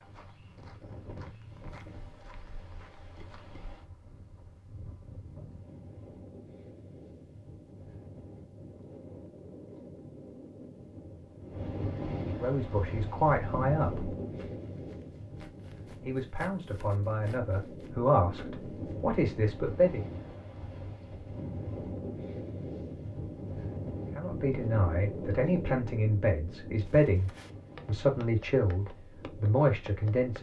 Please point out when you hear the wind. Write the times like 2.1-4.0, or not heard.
0.0-30.3.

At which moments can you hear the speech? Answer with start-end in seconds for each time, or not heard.
12.2-14.1, 16.0-20.1, 24.1-30.3.